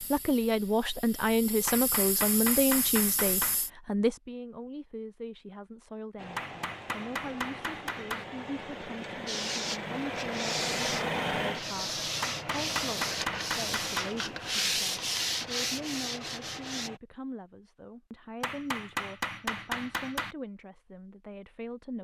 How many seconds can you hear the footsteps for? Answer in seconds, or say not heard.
not heard.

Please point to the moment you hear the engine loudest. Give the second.
11 s.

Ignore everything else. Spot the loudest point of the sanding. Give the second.
15 s.